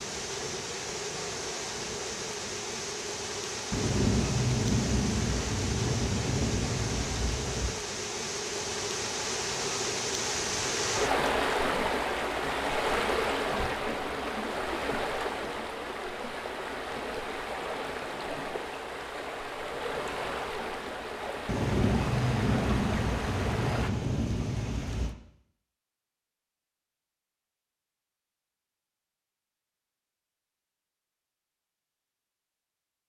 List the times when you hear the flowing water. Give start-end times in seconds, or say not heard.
0.0-23.9.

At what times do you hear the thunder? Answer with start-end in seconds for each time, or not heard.
3.7-7.8, 21.4-25.1.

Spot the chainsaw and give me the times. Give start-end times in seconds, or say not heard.
not heard.